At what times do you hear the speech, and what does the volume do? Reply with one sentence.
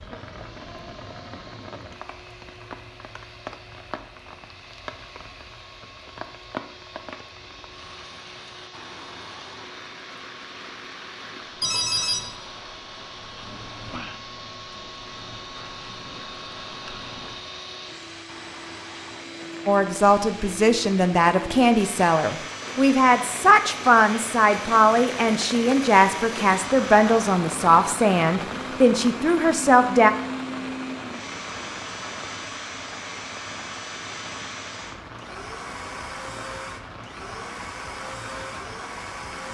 You can hear the speech from 19.6 to 30.1 s, at a steady volume.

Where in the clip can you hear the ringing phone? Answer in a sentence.
You can hear the ringing phone from 11.6 to 12.3 s.